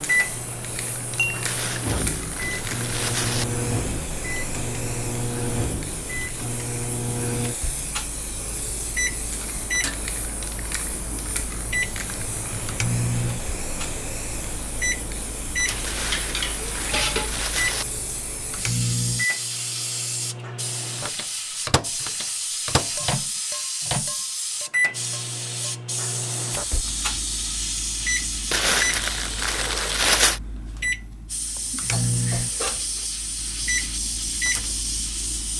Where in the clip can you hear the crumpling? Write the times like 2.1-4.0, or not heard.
1.4-3.5, 15.8-17.9, 28.5-30.4.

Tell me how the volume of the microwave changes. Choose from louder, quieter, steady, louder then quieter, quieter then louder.
steady.